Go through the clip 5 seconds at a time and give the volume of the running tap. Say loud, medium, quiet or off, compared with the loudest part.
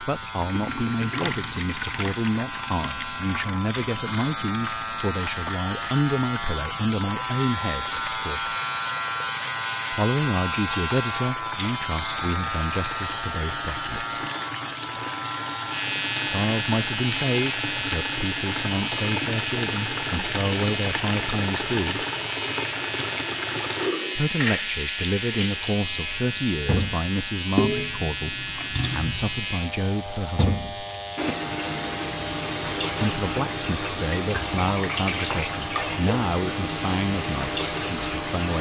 medium, medium, medium, loud, loud, loud, loud, loud.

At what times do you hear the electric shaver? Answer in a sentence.
You can hear the electric shaver from 0.0 to 38.5 s.